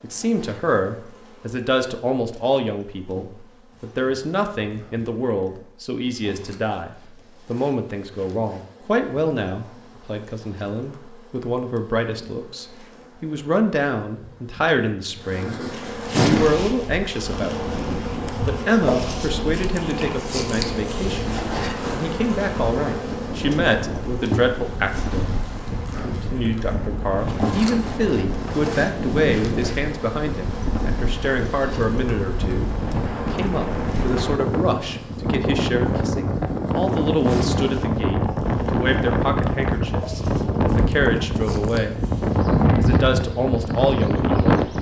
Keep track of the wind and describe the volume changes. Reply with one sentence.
The volume of the wind goes up.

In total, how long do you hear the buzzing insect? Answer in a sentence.
The buzzing insect can be heard for 45 seconds in total.